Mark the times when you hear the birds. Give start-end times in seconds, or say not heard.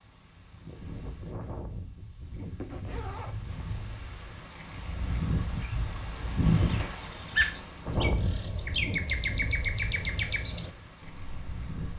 5.6-11.9.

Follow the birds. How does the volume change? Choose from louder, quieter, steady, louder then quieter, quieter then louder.
louder then quieter.